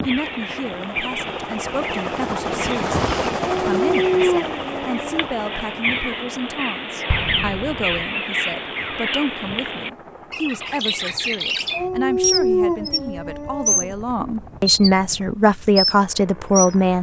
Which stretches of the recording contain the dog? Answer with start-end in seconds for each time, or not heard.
3.4-5.2, 11.7-13.9.